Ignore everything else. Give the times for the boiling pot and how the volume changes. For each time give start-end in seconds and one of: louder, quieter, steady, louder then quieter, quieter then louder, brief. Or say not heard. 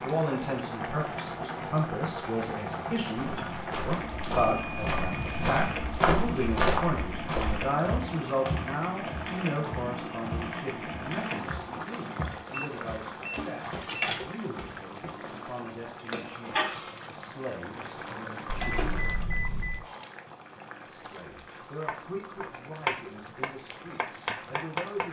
0.0-25.0 quieter.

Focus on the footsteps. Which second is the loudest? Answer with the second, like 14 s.
7 s.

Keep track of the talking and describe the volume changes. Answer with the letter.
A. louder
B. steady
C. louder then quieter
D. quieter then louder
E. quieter
E.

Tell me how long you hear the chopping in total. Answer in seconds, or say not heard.
3 s.